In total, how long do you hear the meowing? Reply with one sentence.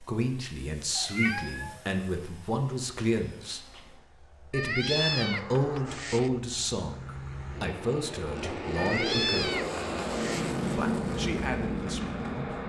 The meowing can be heard for 4 seconds in total.